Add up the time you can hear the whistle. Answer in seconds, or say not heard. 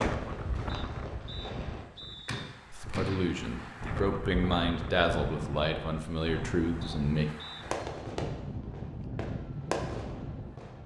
3 s.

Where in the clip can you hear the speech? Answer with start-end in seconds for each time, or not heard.
2.7-7.3.